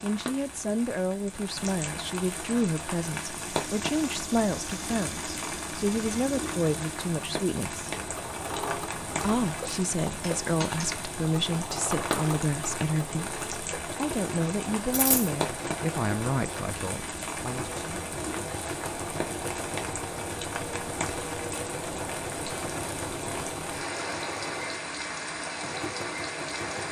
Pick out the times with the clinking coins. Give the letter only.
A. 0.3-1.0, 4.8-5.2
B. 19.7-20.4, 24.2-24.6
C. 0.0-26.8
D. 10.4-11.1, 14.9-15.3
D.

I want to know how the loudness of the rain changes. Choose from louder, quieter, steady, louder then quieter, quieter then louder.
steady.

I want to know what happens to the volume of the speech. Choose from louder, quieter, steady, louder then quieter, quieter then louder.
steady.